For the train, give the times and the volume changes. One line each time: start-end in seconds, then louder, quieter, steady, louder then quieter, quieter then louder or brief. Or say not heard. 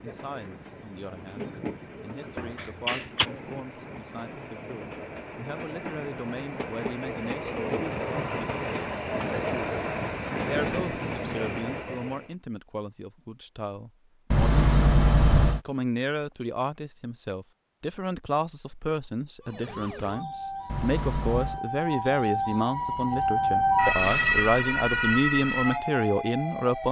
0.0-12.3 louder.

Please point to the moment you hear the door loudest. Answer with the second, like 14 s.
15 s.